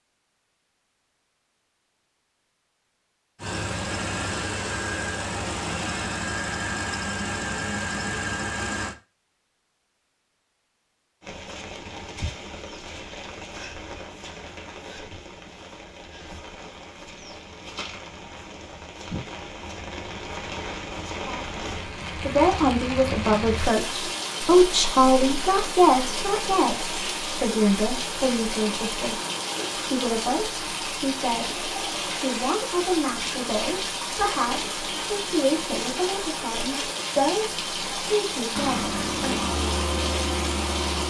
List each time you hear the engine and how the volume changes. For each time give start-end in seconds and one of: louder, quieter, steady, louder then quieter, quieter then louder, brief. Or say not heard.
3.4-8.9 steady
38.5-41.0 brief.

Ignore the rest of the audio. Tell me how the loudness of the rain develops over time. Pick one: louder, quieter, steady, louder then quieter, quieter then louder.
louder.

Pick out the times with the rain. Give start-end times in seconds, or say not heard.
11.2-41.0.